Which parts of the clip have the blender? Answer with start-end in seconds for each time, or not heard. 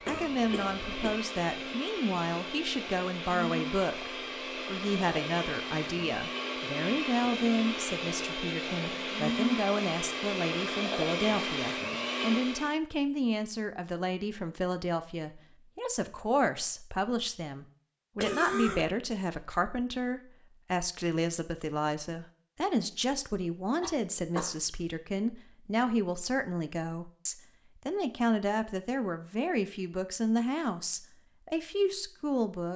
0.0-12.8.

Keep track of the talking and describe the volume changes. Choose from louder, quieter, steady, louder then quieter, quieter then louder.
steady.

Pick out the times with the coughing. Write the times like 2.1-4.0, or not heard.
0.1-1.2, 18.2-18.9, 23.8-24.6.